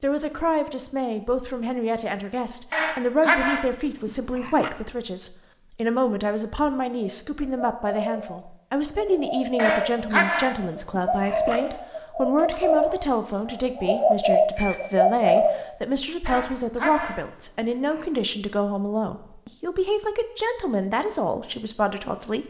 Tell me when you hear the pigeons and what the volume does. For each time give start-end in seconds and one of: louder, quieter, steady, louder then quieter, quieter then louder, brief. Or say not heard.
6.9-15.7 louder.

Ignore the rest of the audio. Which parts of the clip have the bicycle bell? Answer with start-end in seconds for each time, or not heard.
14.6-15.3.